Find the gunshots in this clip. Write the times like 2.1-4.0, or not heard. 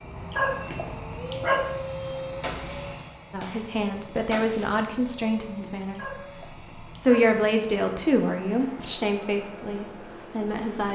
2.4-4.8.